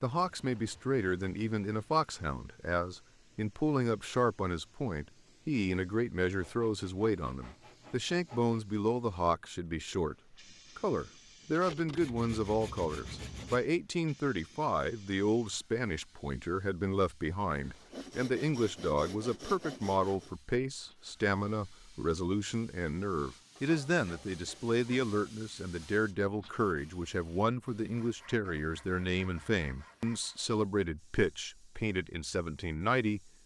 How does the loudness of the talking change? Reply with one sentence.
The loudness of the talking stays about the same.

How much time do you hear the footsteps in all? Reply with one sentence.
The footsteps can't be heard in this clip.